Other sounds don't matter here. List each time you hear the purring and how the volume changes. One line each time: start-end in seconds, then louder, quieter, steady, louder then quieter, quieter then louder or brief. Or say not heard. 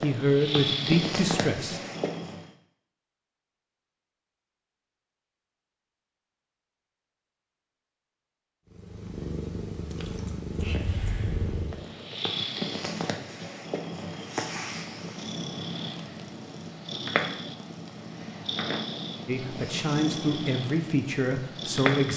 0.0-2.5 brief
8.7-22.1 steady.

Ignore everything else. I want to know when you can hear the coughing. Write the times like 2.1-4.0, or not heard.
10.6-11.7.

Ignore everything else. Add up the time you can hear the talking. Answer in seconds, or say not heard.
5 s.